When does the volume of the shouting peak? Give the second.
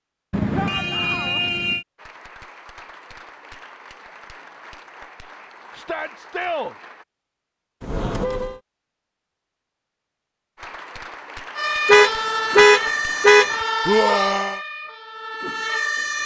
14 s.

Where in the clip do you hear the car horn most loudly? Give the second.
13 s.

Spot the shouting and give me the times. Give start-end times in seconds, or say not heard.
0.6-1.4, 5.7-6.8, 13.8-14.6.